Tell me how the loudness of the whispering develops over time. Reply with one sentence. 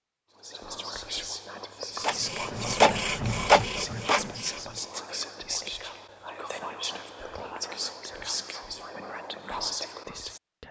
The volume of the whispering stays about the same.